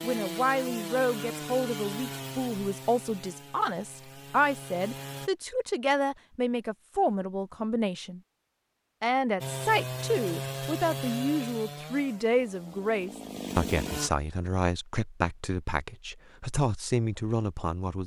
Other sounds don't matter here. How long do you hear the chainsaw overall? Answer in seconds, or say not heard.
10 s.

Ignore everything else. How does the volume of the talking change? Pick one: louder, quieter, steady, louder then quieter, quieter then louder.
steady.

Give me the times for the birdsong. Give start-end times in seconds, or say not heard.
not heard.